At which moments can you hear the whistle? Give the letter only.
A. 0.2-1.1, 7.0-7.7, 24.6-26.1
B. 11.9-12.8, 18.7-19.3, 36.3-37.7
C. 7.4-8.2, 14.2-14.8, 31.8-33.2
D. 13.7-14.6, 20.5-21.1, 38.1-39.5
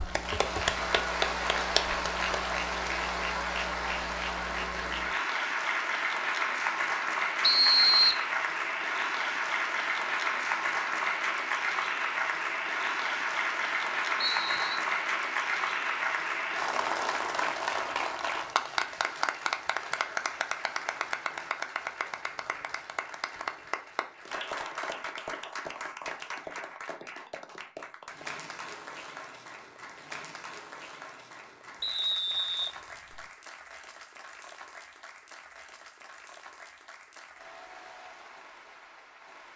C.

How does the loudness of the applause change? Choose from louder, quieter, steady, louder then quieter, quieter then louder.
quieter.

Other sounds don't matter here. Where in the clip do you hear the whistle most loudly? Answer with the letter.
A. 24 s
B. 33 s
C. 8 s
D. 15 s
C.